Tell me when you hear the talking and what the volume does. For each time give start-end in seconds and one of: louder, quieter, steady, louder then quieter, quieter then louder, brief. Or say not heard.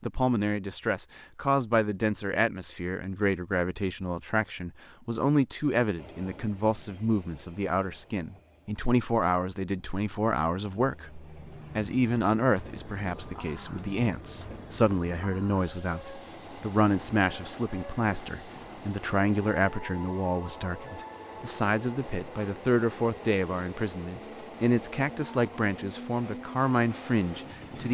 0.0-27.8 steady.